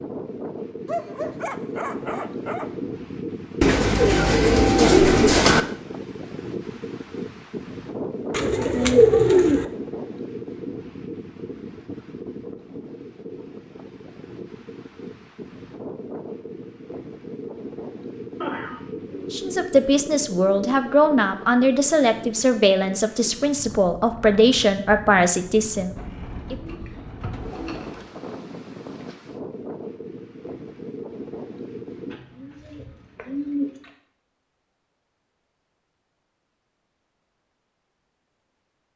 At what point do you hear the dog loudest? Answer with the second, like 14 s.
1 s.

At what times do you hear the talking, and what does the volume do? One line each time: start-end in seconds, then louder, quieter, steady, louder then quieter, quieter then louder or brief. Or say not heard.
19.3-26.6 steady.